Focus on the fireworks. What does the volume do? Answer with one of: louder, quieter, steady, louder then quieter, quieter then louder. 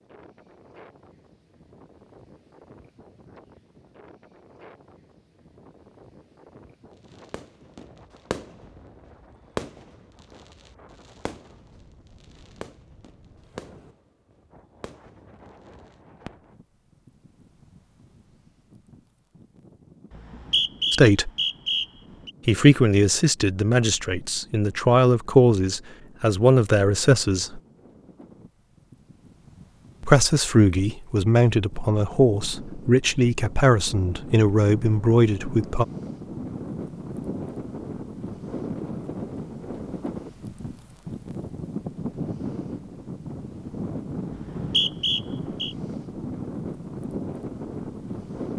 quieter.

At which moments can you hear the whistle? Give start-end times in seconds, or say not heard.
20.1-22.3, 44.4-45.8.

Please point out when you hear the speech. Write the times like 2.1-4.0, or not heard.
20.9-21.3, 22.4-27.6, 30.0-35.9.